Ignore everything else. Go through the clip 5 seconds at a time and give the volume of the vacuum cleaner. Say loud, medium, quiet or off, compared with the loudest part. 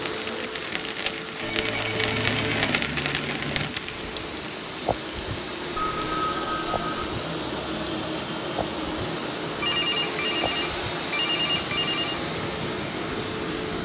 medium, loud, loud.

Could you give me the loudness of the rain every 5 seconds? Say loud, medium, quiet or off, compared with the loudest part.
loud, medium, medium.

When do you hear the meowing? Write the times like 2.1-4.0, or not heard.
2.0-3.8.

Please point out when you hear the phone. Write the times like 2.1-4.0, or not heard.
1.4-2.9, 5.9-6.9, 9.6-12.2.